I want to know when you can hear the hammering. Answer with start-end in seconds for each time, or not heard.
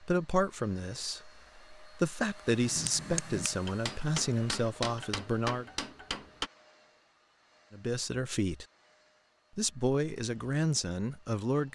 2.6-6.5.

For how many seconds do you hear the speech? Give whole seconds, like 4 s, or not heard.
9 s.